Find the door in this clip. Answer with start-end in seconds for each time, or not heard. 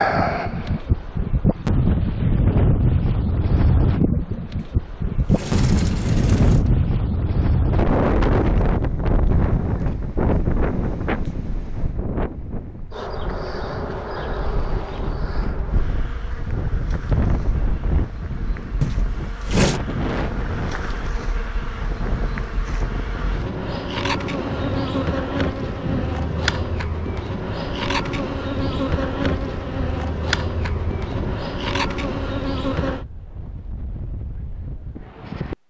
4.5-6.9, 18.8-19.8.